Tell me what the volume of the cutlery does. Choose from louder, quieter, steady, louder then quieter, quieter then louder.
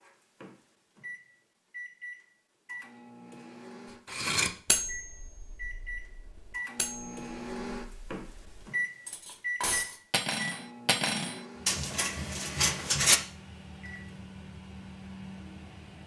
quieter then louder.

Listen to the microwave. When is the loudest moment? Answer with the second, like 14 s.
9 s.